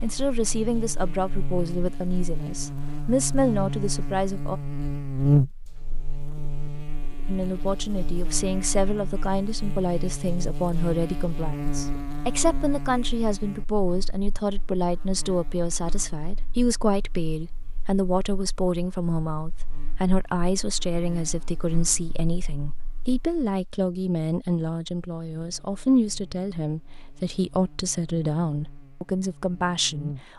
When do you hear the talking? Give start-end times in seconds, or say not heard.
0.0-4.6, 7.2-30.3.